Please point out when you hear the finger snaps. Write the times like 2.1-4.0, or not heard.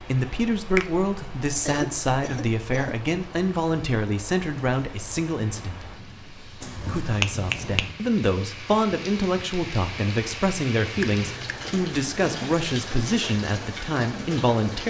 6.6-7.8, 11.0-11.7.